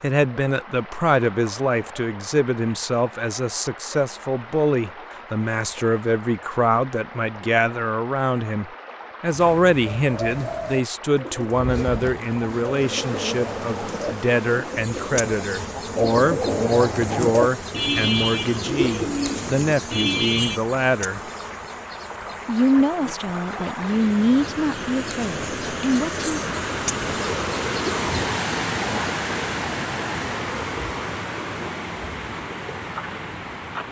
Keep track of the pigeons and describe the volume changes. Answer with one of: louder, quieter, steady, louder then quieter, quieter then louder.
louder.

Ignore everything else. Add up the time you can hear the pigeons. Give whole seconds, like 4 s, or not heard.
11 s.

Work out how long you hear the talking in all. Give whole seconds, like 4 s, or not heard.
25 s.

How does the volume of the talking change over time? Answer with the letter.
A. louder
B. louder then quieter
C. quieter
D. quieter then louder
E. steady
E.